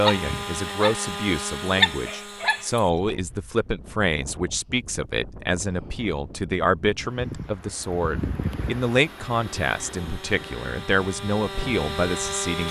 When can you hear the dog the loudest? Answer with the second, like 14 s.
2 s.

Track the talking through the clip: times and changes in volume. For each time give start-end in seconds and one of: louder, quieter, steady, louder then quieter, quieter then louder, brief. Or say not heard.
0.0-12.6 steady.